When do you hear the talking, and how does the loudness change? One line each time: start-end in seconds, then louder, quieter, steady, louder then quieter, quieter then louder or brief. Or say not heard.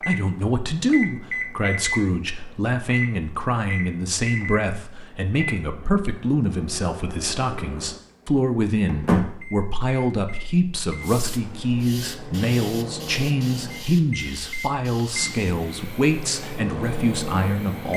0.1-17.9 steady.